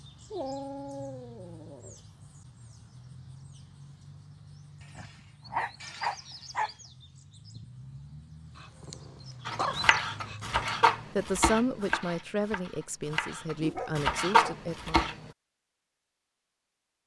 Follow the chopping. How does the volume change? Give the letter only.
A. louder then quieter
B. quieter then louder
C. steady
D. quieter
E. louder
B.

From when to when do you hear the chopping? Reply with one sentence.
The chopping can be heard from 9.4 to 15.2 s.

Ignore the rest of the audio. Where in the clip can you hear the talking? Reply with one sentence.
You can hear the talking from 11.2 to 15.2 s.